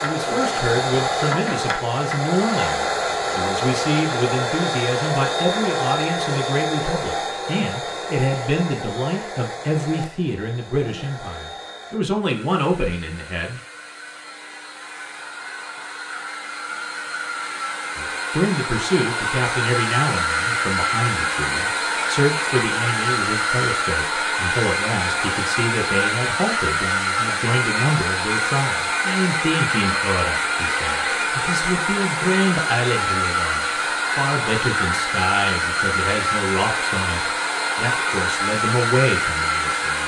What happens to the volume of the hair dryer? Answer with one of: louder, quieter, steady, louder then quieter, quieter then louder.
quieter then louder.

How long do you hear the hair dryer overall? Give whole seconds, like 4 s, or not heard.
40 s.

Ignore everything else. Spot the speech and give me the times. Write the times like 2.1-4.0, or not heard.
0.0-13.6, 17.9-40.0.